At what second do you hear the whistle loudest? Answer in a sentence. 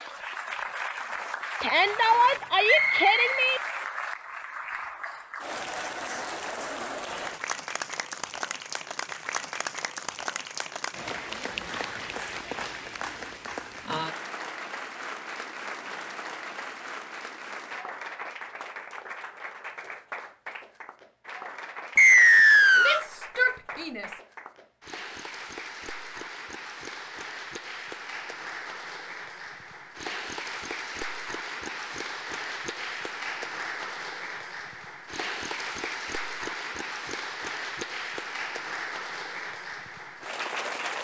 The volume of the whistle peaks at 22 seconds.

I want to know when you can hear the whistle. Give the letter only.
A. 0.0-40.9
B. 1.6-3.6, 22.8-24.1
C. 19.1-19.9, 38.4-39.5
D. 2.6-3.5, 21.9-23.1
D.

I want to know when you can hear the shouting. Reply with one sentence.
The shouting can be heard from 1.6 to 3.6 s and from 22.8 to 24.1 s.